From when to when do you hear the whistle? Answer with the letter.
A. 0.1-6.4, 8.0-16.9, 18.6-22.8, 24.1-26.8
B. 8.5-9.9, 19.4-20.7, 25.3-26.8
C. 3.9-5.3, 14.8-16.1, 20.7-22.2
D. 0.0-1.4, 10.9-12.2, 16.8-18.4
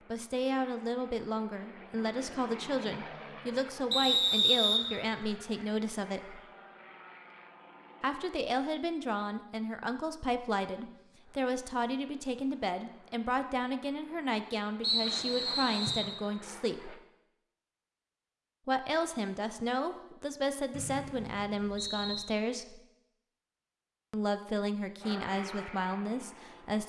C.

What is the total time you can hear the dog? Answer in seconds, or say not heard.
not heard.